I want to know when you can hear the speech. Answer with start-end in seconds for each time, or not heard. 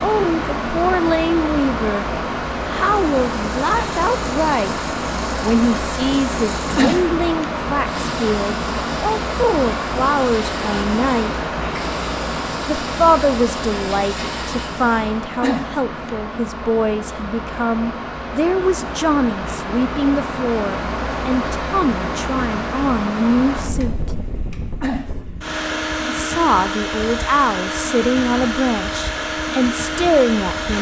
0.0-4.8, 5.4-11.3, 12.7-23.9, 26.1-30.7.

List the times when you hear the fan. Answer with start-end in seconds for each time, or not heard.
0.0-30.7.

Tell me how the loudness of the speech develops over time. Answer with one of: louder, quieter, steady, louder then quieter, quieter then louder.
steady.